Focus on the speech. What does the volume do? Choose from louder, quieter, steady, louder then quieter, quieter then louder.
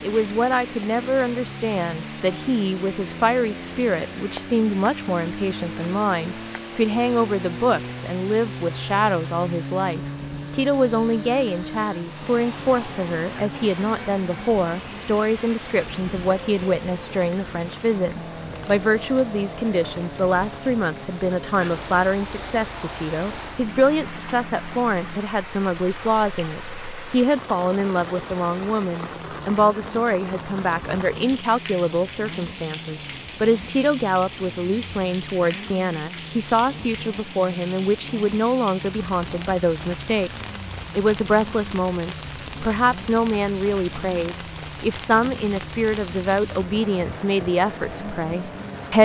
steady.